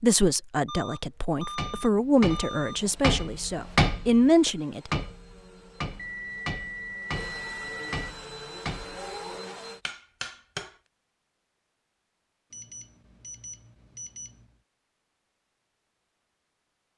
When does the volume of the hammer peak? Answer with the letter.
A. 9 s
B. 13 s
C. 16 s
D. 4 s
D.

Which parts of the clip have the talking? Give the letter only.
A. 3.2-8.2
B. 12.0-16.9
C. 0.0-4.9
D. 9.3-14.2
C.